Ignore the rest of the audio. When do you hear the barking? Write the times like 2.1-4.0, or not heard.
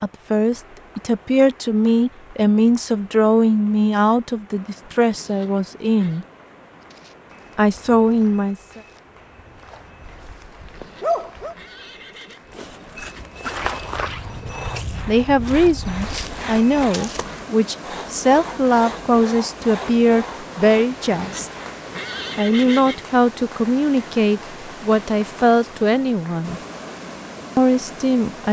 10.1-11.6.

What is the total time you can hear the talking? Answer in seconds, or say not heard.
19 s.